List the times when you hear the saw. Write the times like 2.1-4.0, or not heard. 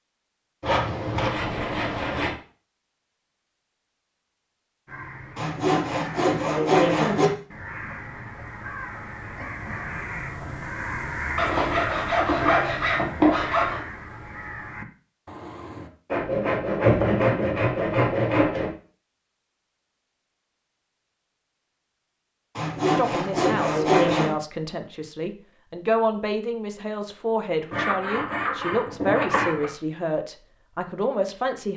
0.6-2.4, 5.3-7.3, 11.3-13.8, 16.1-18.7, 22.6-24.4, 27.7-29.7.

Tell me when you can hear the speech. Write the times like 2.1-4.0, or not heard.
22.9-31.7.